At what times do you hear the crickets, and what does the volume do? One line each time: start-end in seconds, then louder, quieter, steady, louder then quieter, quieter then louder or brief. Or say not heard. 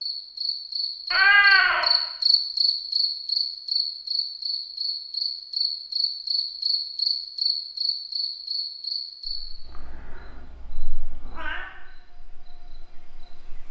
0.0-13.6 quieter.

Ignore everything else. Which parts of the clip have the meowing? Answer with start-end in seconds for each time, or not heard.
1.1-1.9, 9.7-11.7.